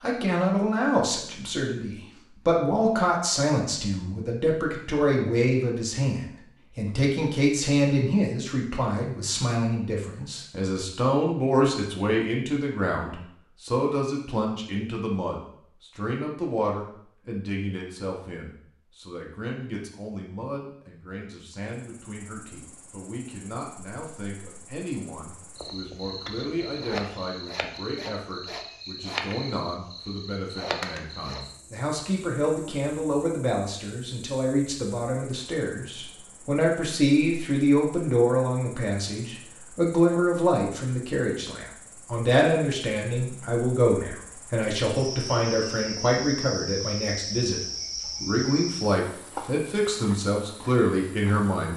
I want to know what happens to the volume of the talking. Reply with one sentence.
The loudness of the talking goes down, then up.